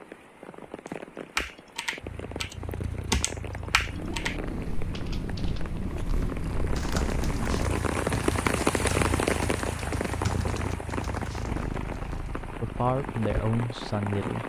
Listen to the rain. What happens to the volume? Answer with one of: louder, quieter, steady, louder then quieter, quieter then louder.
louder then quieter.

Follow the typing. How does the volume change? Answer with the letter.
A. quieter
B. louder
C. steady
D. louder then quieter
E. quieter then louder
A.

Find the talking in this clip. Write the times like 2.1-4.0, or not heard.
12.6-14.4.